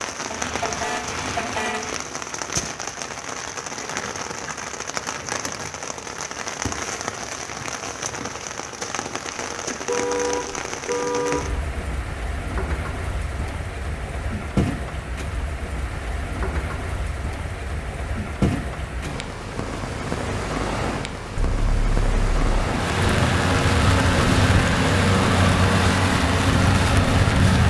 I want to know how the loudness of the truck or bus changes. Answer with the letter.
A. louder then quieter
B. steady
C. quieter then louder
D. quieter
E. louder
B.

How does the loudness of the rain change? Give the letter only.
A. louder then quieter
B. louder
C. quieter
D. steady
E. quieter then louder
D.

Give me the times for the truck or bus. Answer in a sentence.
The truck or bus can be heard from 22.6 to 27.6 s.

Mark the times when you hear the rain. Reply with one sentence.
You can hear the rain from 0.0 to 27.6 s.